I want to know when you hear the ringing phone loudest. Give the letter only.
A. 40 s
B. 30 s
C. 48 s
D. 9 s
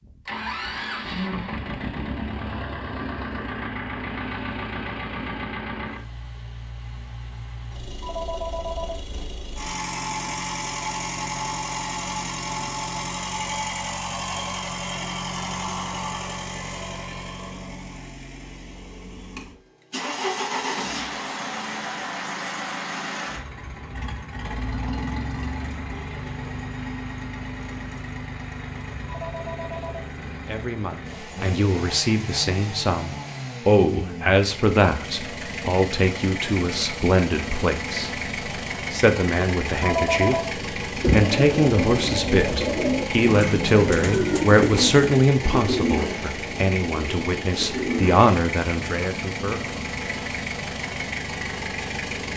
A.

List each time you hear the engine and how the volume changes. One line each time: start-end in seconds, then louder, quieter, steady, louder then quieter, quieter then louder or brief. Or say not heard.
0.0-52.3 steady.